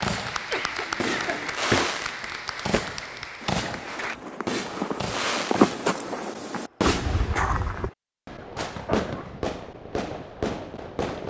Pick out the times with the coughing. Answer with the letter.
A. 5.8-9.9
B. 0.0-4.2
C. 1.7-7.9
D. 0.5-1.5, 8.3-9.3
D.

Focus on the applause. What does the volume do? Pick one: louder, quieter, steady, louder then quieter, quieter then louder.
quieter.